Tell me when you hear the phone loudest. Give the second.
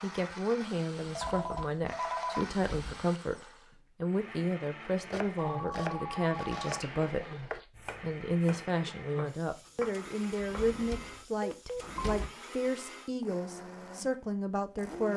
2 s.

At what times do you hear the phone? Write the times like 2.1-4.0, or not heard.
1.1-2.5, 5.3-7.7, 11.4-12.2.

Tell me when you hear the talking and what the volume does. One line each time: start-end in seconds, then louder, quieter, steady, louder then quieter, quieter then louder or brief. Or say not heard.
0.0-7.3 steady
8.0-15.1 steady.